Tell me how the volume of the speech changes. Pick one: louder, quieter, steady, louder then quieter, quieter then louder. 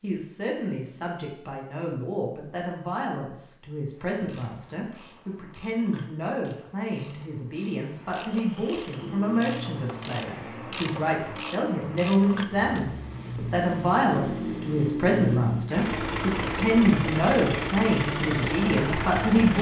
louder.